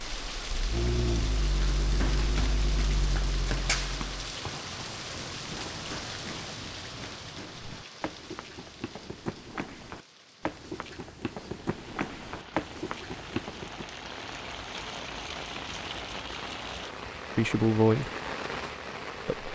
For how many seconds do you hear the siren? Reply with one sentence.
The siren can't be heard in this clip.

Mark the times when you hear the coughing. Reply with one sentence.
You can't hear the coughing here.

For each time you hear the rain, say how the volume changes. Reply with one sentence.
The rain can be heard from 0.0 to 19.5 s, getting quieter then louder.